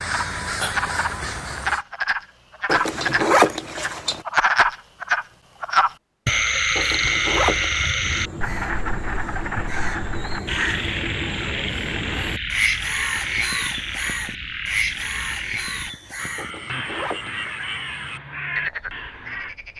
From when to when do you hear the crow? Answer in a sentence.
The crow can be heard from 0.0 to 1.9 s and from 8.0 to 19.6 s.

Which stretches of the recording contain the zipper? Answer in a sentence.
You can hear the zipper from 2.6 to 4.2 s, from 6.8 to 7.9 s and from 16.4 to 17.6 s.